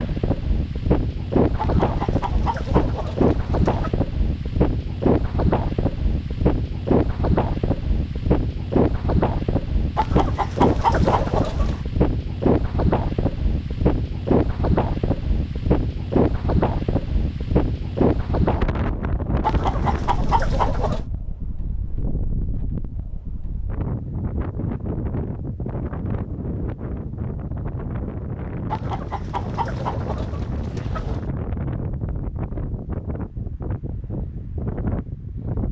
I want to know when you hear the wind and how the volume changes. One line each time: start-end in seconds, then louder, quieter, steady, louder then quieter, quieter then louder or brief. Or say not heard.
0.0-35.6 quieter.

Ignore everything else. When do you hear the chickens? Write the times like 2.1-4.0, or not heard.
1.6-4.0, 9.9-11.8, 19.4-21.1, 28.7-31.3.